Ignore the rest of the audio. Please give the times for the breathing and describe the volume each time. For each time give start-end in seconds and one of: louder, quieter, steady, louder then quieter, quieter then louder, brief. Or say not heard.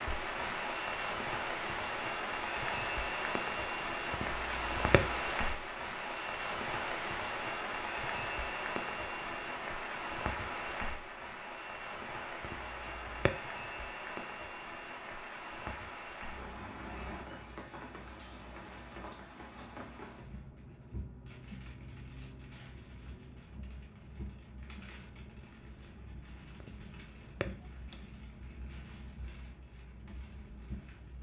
not heard.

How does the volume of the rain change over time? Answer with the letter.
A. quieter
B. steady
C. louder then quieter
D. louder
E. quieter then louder
A.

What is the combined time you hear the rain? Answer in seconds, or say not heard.
31 s.